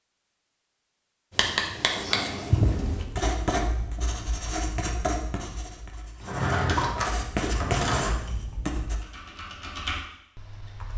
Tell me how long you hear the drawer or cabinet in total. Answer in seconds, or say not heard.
3 s.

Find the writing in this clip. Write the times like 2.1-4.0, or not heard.
1.4-9.0.